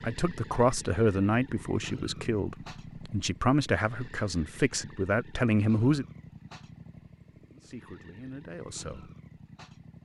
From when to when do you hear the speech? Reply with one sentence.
The speech can be heard from 0.0 to 6.0 s and from 7.5 to 9.1 s.